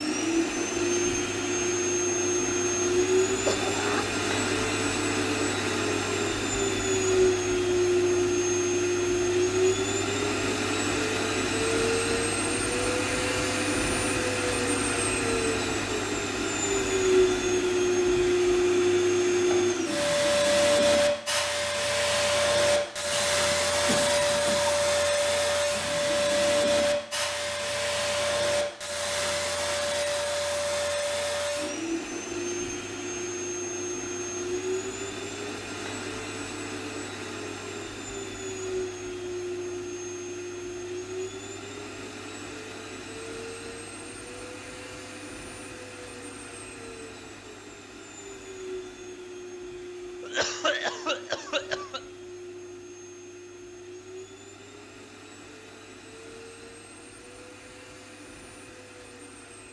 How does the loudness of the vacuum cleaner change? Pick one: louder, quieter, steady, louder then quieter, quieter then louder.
quieter.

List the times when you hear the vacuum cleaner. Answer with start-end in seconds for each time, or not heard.
0.0-59.6.